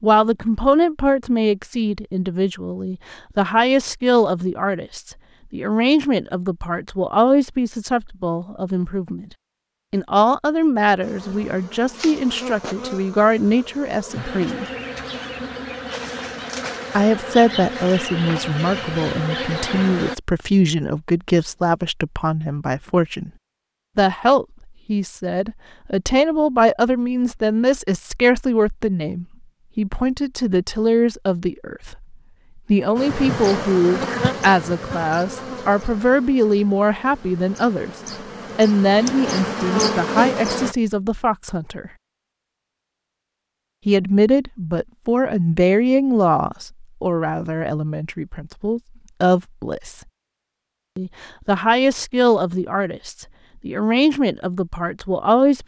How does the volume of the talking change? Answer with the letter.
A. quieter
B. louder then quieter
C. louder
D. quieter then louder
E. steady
E.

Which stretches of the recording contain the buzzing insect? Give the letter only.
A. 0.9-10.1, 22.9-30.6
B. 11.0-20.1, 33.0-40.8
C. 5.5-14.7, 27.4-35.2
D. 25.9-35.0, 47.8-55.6
B.